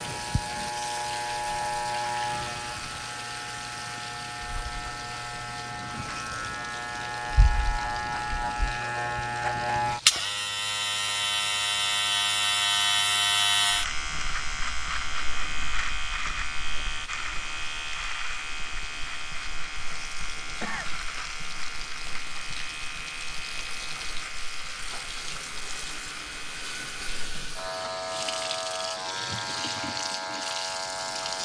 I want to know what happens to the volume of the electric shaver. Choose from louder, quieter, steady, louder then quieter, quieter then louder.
louder then quieter.